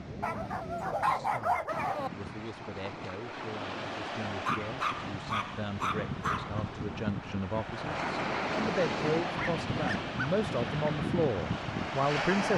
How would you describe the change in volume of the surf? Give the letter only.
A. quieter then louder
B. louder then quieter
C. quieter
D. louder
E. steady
D.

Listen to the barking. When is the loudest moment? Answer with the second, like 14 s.
1 s.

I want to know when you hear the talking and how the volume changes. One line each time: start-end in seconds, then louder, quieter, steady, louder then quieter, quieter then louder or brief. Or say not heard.
0.1-12.5 louder.